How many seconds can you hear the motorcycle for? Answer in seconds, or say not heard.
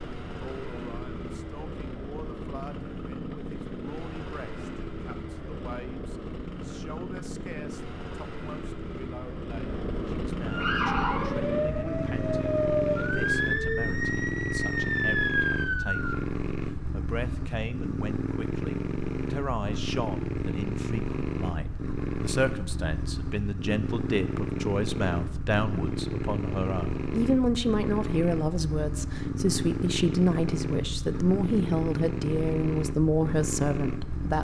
34 s.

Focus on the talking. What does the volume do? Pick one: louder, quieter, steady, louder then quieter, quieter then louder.
louder.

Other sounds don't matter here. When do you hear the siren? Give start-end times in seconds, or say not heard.
10.4-16.2.